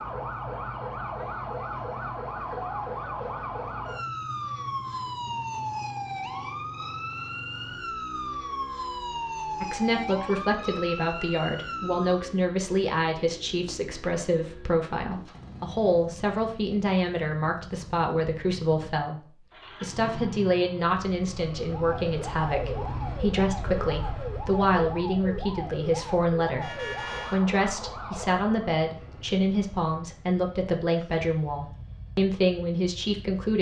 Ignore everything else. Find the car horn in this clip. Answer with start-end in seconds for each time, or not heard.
26.6-27.4.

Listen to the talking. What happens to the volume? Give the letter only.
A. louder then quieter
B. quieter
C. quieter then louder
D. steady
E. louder
D.